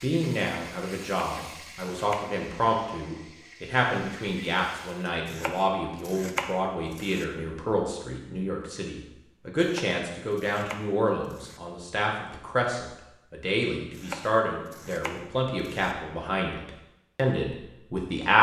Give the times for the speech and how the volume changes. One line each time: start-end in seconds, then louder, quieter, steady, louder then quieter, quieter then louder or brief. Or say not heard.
0.0-18.3 steady.